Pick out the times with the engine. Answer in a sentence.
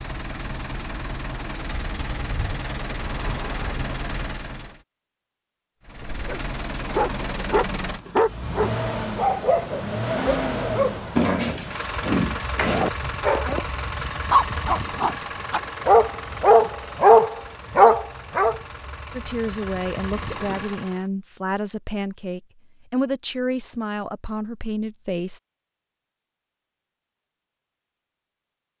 You can hear the engine from 0.0 to 4.8 s and from 5.8 to 21.1 s.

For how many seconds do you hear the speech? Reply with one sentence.
The speech can be heard for 6 seconds in total.